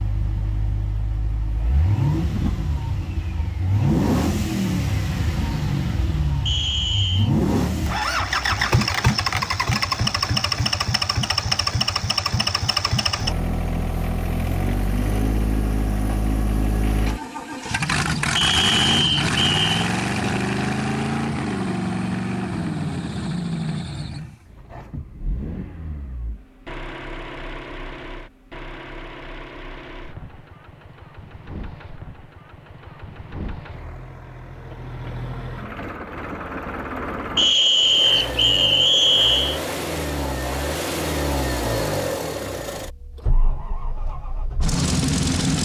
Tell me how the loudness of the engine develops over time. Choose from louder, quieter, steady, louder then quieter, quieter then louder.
quieter then louder.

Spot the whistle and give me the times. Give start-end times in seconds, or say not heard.
6.5-7.3, 18.4-19.6, 37.4-39.6.